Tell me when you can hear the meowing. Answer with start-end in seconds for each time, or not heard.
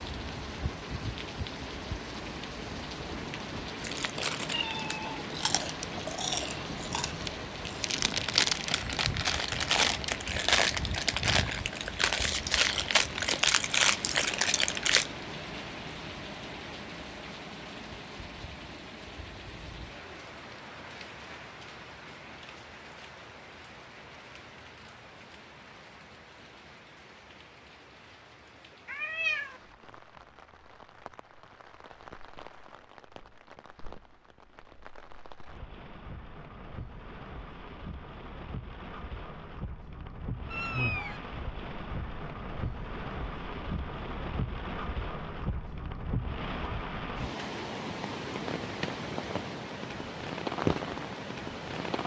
4.5-5.2, 28.9-29.6, 40.5-41.2.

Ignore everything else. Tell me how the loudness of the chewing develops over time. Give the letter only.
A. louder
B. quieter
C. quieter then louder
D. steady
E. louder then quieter
A.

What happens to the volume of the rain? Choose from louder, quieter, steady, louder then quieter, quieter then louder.
quieter then louder.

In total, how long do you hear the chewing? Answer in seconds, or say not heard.
11 s.